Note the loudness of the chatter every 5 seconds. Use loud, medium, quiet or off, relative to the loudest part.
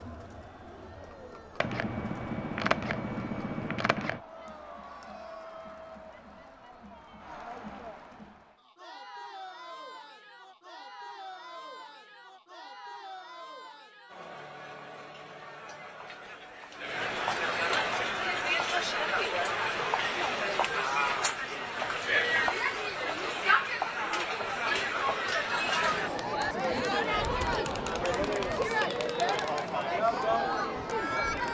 quiet, quiet, quiet, loud, loud, loud, loud.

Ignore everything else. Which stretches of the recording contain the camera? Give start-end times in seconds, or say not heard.
1.6-4.2.